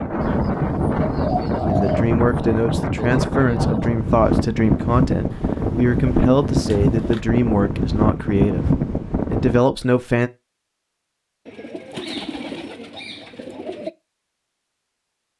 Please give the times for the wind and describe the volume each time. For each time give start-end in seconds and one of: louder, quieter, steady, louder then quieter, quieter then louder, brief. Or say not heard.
0.0-9.6 steady.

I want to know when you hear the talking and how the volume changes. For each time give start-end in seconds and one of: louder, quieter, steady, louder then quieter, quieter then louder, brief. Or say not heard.
1.6-10.3 steady.